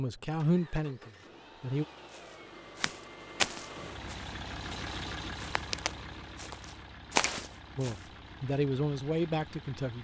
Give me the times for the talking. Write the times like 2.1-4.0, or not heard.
0.0-1.9, 7.8-10.0.